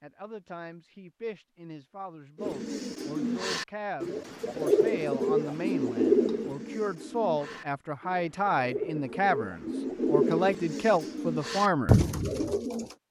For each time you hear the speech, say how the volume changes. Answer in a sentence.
The speech can be heard from 0.0 to 12.0 s, getting louder.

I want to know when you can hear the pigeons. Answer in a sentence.
The pigeons can be heard from 2.4 to 12.9 s.